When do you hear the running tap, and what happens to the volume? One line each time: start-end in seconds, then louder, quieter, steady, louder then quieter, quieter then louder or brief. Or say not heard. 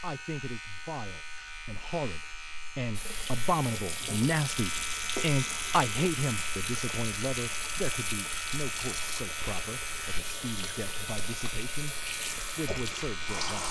3.0-13.6 steady.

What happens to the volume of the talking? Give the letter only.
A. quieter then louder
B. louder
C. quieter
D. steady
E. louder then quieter
E.